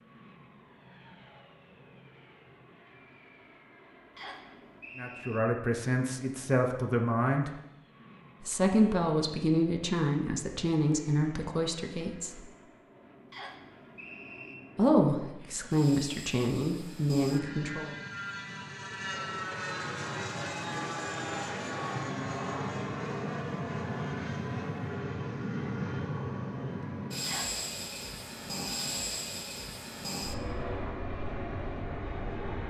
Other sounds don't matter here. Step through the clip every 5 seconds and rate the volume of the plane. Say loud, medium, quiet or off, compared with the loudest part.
quiet, quiet, quiet, medium, loud, loud, loud.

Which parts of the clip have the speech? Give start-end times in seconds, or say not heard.
5.0-7.5, 8.4-12.5, 14.8-17.9.